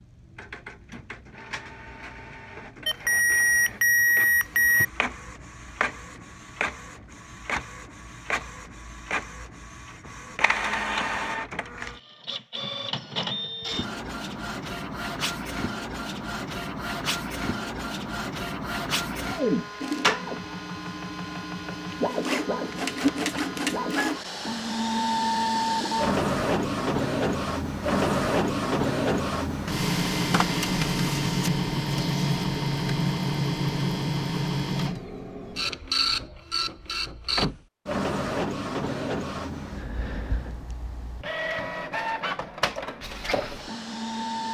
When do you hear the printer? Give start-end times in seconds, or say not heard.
0.0-44.5.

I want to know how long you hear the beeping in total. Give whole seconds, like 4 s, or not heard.
2 s.